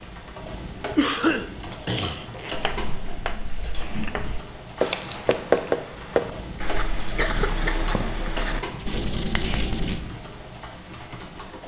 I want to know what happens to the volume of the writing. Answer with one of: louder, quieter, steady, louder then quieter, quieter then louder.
louder then quieter.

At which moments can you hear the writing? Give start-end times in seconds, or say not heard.
2.5-10.1.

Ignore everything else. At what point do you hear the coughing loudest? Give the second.
1 s.